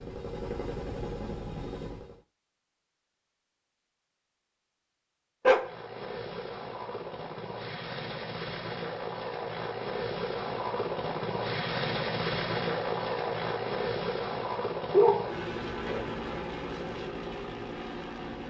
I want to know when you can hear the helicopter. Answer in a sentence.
You can hear the helicopter from 0.0 to 2.2 s and from 5.5 to 18.4 s.